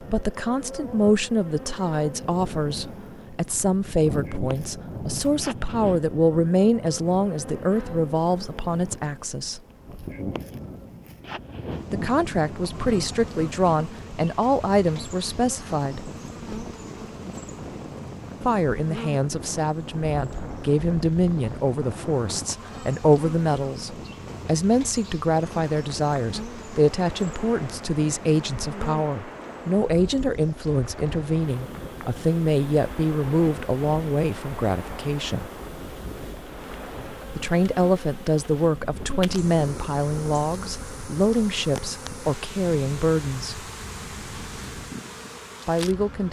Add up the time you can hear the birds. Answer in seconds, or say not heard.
not heard.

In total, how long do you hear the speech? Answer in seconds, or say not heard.
38 s.